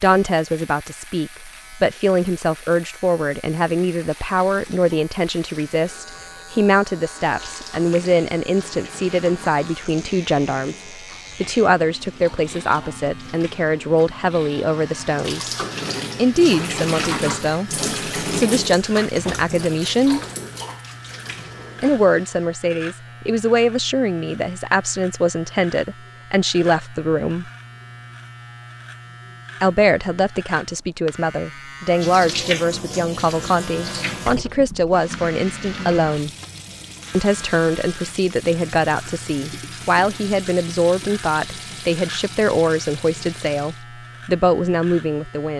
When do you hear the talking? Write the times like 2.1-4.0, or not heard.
0.0-15.6, 16.1-20.2, 21.8-27.4, 29.6-36.3, 37.1-45.5.